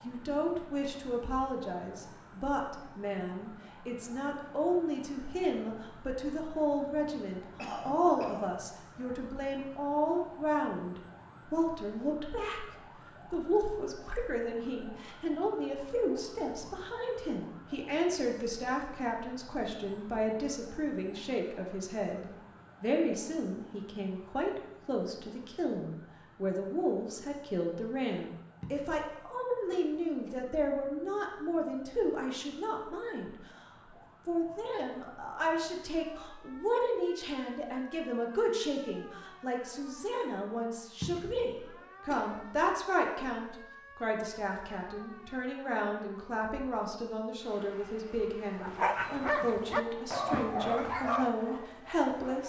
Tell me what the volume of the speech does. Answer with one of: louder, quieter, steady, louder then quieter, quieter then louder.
steady.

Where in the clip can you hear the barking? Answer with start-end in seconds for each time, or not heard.
48.6-52.4.